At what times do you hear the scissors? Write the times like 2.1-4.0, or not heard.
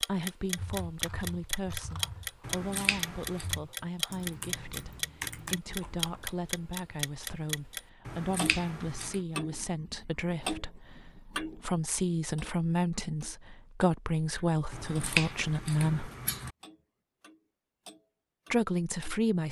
2.5-3.5, 8.1-9.2, 14.7-16.5.